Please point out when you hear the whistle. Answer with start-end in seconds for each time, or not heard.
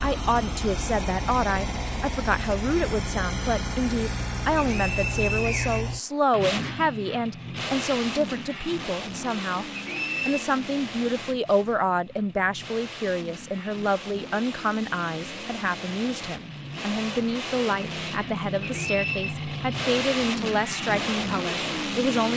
4.6-5.8, 9.8-10.4, 18.6-19.4.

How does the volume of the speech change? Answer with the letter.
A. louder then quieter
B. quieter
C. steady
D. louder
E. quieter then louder
C.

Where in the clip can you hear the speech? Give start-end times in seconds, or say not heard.
0.0-9.7, 10.2-22.3.